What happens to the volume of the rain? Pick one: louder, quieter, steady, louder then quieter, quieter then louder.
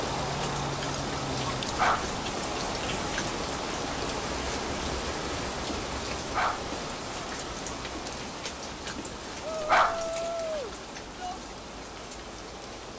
quieter.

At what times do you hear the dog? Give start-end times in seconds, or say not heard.
1.7-2.1, 6.2-6.7, 9.6-10.1.